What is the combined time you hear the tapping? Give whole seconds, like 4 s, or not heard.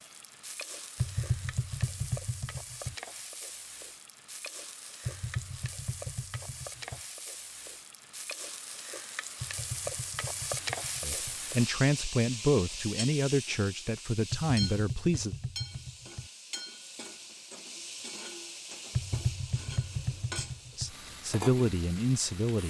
10 s.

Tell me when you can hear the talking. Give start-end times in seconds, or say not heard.
11.0-15.3, 20.8-22.6.